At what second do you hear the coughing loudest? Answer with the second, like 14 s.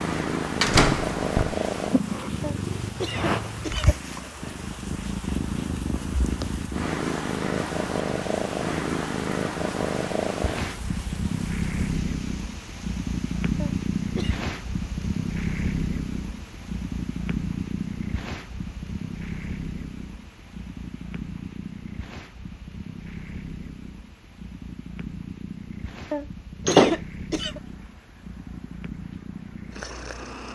27 s.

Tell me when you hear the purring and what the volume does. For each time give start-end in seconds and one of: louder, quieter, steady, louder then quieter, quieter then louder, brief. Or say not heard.
0.0-30.5 quieter.